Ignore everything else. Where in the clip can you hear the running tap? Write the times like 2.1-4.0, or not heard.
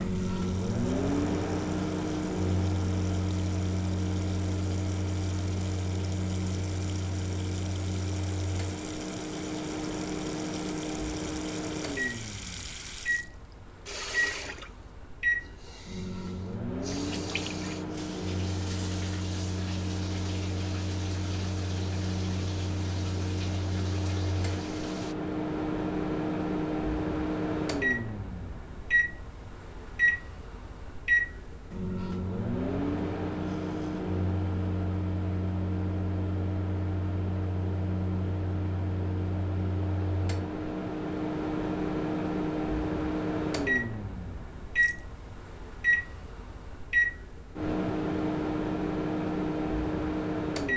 0.0-25.1.